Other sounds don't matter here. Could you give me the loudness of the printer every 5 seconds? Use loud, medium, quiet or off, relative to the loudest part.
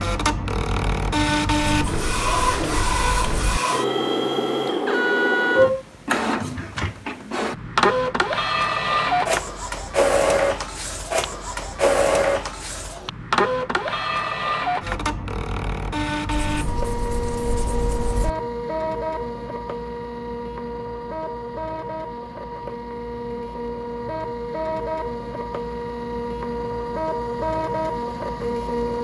loud, loud, loud, medium, medium, medium.